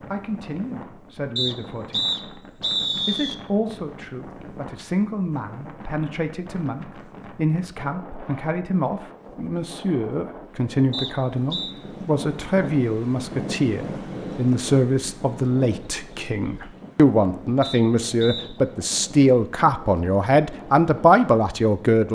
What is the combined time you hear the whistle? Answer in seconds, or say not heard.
4 s.